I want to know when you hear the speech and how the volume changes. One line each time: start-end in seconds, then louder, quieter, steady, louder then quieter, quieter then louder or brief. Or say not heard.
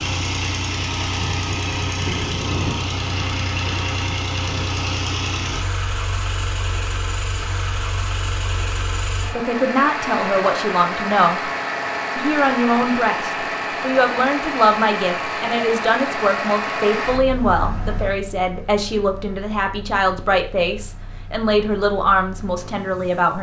9.2-11.4 brief
12.2-23.3 steady.